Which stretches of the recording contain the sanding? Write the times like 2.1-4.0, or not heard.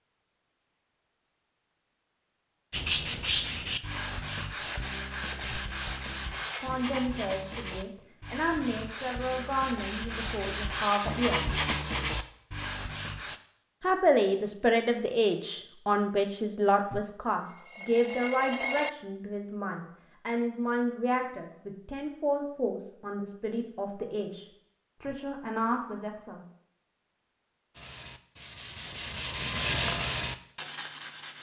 2.7-13.4, 27.8-31.3.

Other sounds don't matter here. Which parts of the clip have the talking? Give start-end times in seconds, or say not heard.
6.6-11.6, 13.8-26.4.